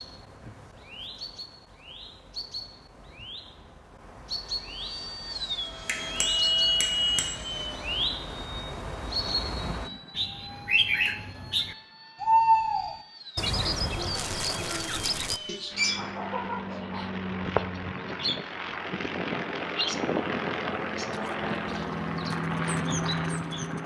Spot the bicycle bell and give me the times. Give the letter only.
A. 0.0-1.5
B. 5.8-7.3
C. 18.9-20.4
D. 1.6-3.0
B.